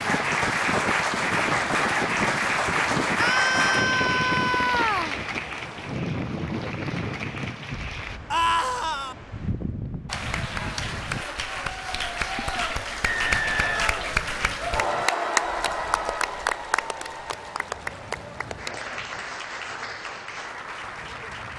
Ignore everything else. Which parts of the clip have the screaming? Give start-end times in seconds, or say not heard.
3.1-5.2, 8.3-9.2, 14.6-16.3.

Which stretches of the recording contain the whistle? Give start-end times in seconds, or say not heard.
13.0-13.9.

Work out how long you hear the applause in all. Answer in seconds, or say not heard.
20 s.